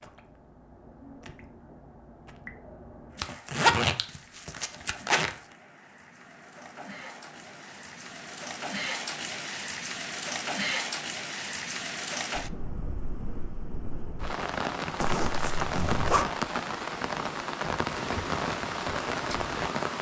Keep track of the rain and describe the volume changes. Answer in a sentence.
The volume of the rain goes up.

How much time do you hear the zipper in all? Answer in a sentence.
You can hear the zipper for 3 seconds altogether.